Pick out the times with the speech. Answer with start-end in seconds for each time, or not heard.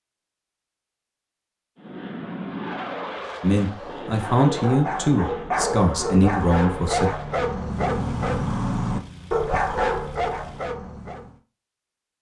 3.4-7.1.